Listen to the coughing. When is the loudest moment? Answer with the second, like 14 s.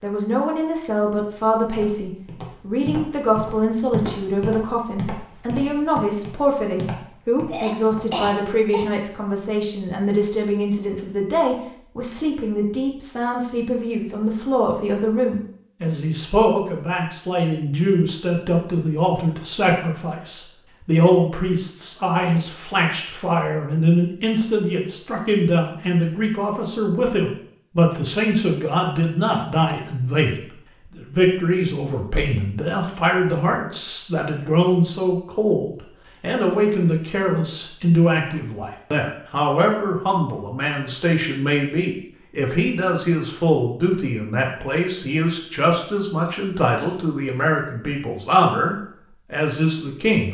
8 s.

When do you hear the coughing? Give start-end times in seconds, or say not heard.
7.5-8.9, 46.1-47.0.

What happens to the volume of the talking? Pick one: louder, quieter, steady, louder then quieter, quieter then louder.
steady.